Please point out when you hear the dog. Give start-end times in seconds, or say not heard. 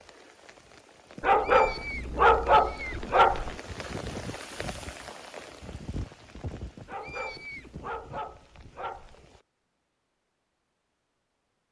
1.2-3.5, 6.8-9.2.